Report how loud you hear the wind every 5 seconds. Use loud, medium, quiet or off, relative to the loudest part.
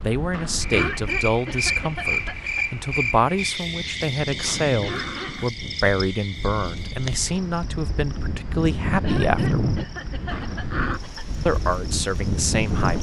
medium, loud, loud.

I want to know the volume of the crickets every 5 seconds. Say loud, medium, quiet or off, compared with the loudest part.
loud, medium, quiet.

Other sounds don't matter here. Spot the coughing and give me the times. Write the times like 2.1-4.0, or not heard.
0.7-2.6, 4.8-5.3, 9.0-11.2.